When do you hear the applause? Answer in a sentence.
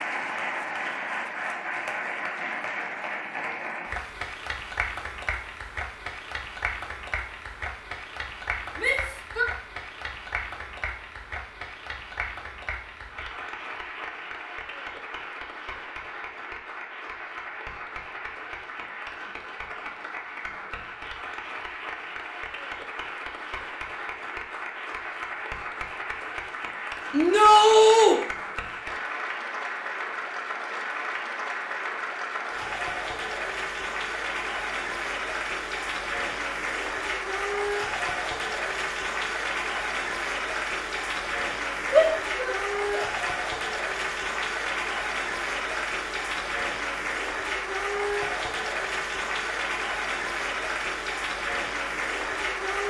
The applause can be heard from 0.0 to 52.8 s.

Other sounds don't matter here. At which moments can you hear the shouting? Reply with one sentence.
The shouting can be heard from 8.8 to 9.4 s, from 27.1 to 28.2 s and from 41.9 to 43.0 s.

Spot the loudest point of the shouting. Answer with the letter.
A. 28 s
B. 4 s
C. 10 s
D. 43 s
A.